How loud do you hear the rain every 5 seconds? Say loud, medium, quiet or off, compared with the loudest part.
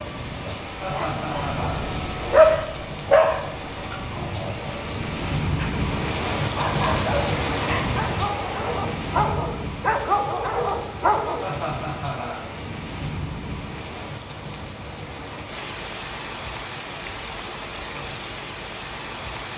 medium, loud, medium, medium.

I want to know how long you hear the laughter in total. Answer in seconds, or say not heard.
2 s.